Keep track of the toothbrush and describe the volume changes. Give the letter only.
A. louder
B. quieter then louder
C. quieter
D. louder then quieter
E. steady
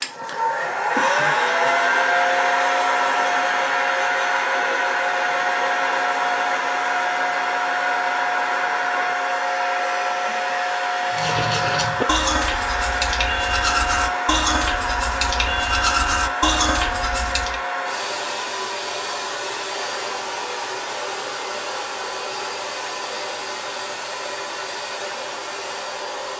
E.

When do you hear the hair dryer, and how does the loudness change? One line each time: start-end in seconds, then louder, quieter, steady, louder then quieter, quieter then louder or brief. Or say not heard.
0.0-26.3 quieter.